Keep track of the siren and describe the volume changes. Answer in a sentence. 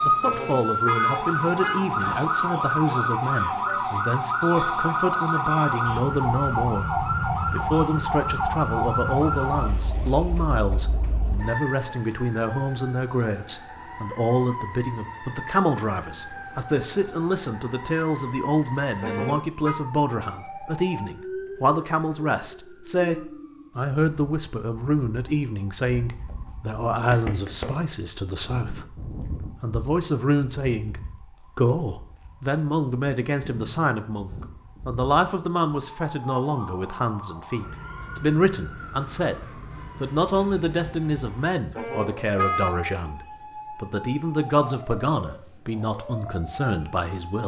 The loudness of the siren goes down.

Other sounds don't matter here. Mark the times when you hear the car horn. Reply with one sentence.
The car horn can be heard from 0.2 to 2.0 s, from 19.0 to 19.8 s and from 41.8 to 42.8 s.